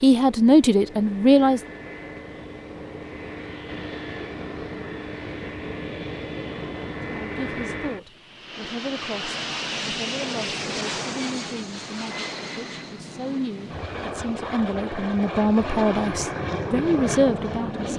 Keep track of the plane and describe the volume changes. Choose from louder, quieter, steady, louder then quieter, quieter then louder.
louder.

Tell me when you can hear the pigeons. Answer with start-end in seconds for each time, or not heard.
not heard.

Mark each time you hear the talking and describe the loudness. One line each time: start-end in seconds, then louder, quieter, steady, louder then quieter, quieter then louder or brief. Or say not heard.
0.0-1.6 brief
7.2-17.9 louder.